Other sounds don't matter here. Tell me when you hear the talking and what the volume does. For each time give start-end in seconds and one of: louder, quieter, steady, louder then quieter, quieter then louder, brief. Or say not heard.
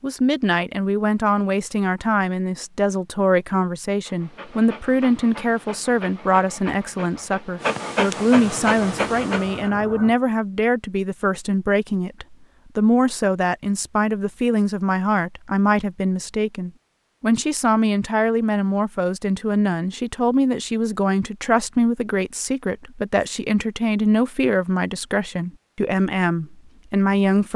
0.0-27.5 steady.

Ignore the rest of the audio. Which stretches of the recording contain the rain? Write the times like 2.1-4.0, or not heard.
not heard.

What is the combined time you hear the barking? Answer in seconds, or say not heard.
6 s.